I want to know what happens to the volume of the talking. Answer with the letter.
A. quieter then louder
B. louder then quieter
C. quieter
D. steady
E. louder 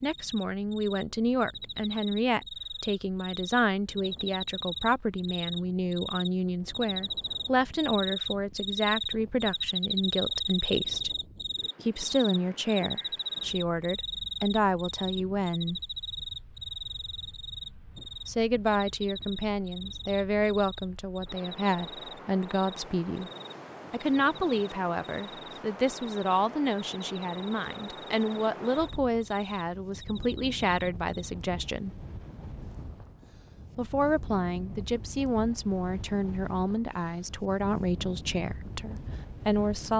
D.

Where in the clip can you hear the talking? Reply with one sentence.
The talking can be heard from 0.0 to 11.2 s, from 11.8 to 15.8 s, from 18.2 to 23.3 s, from 23.9 to 31.9 s and from 33.8 to 39.9 s.